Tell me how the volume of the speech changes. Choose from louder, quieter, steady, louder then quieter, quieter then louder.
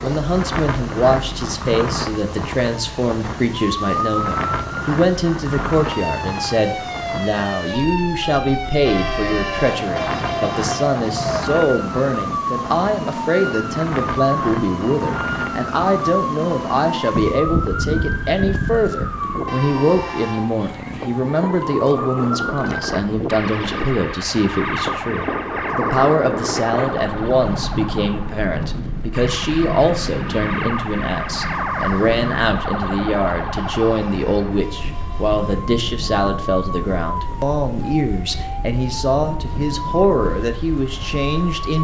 steady.